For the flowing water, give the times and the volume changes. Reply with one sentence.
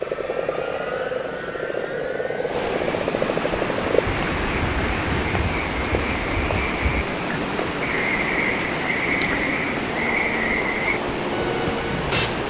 The flowing water can be heard from 0.0 to 12.4 s, getting louder.